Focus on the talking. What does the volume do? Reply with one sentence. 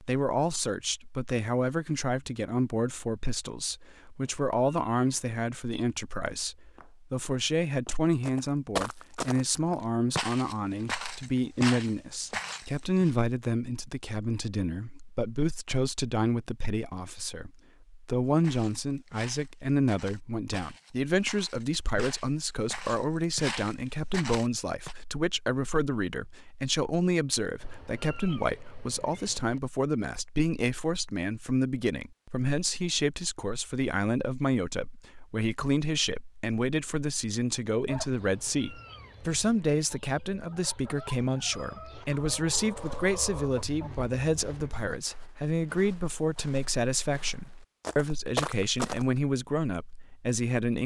The volume of the talking stays about the same.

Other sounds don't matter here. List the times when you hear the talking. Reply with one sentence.
You can hear the talking from 0.0 to 50.8 s.